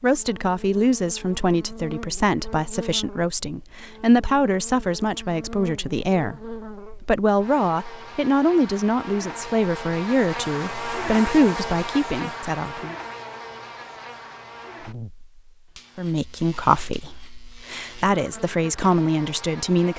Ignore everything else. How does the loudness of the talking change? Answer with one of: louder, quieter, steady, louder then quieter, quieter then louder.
steady.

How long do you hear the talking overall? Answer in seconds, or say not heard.
17 s.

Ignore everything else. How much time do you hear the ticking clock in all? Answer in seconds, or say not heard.
not heard.